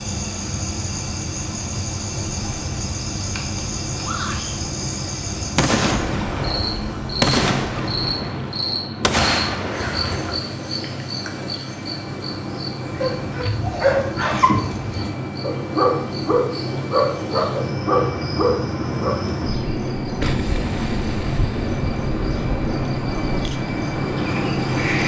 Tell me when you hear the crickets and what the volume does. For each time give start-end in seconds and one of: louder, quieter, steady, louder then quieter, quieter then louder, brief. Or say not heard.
0.0-25.0 quieter.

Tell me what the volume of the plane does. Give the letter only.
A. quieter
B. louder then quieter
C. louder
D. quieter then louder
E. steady
C.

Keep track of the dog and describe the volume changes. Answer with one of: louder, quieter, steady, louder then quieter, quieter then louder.
steady.